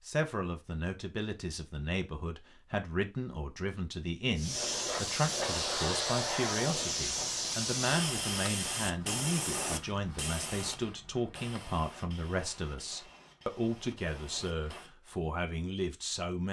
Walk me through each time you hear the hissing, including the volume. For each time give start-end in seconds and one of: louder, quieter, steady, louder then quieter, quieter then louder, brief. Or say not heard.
4.3-14.9 quieter.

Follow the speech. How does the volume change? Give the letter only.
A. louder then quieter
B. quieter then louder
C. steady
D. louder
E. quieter
C.